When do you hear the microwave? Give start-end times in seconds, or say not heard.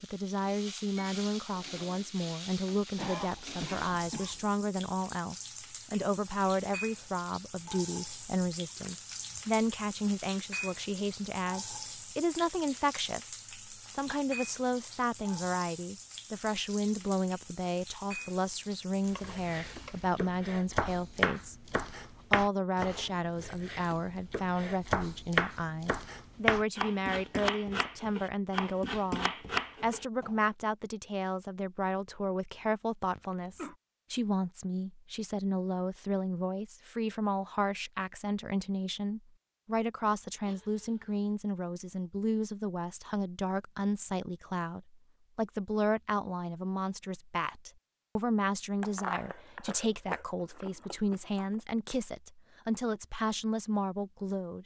not heard.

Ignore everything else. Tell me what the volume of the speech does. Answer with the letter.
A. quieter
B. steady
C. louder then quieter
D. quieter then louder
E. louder
B.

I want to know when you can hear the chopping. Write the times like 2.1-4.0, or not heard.
19.1-30.4.